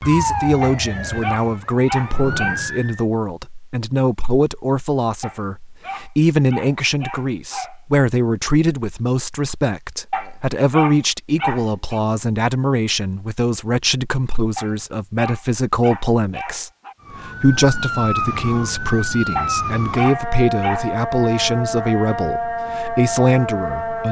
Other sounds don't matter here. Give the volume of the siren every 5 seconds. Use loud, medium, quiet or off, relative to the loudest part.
loud, off, off, loud, loud.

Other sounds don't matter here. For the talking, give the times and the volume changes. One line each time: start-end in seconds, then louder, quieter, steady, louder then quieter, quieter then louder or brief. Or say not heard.
0.0-24.0 steady.